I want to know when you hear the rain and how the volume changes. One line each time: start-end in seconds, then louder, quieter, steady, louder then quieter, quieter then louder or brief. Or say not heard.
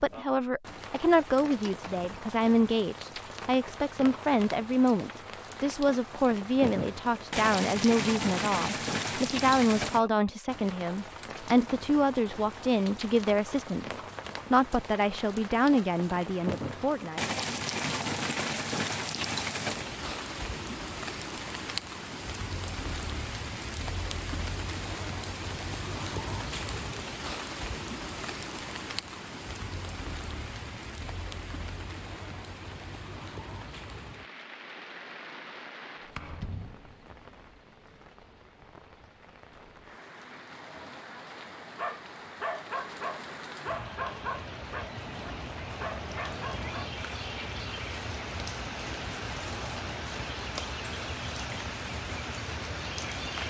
0.0-53.4 quieter then louder.